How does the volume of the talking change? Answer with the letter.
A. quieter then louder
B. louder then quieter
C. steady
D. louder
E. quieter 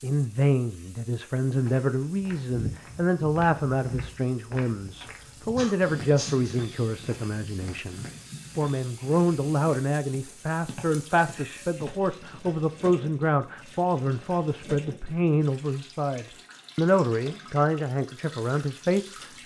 C.